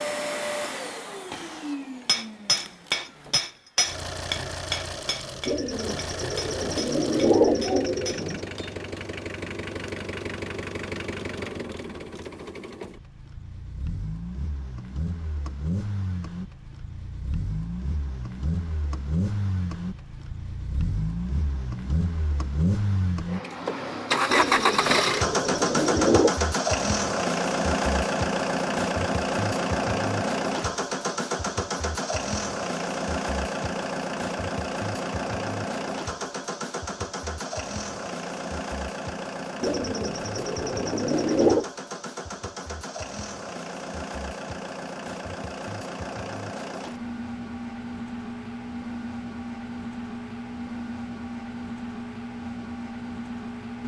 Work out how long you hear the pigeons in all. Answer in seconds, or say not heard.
7 s.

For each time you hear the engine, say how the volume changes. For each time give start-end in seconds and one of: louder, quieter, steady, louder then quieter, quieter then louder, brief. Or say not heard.
0.0-53.8 louder then quieter.